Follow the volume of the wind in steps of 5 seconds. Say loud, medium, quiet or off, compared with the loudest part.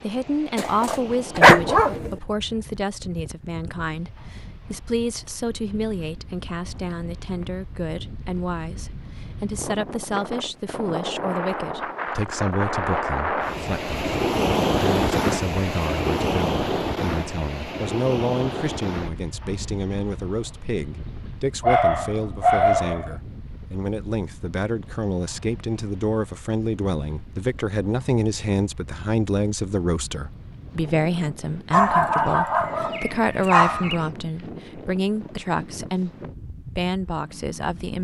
quiet, quiet, loud, loud, quiet, quiet, quiet, quiet.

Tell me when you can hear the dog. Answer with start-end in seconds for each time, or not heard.
0.6-2.1, 21.6-23.1, 31.7-34.0.